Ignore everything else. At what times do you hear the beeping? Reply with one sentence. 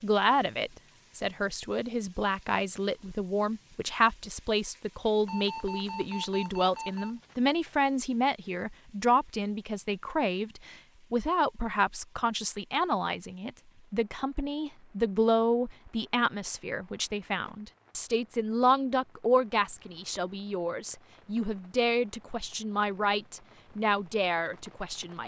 You can hear the beeping from 5.2 to 7.2 s.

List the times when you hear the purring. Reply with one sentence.
You can't hear the purring here.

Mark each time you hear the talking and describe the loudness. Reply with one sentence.
The talking can be heard from 0.0 to 25.2 s, at a steady volume.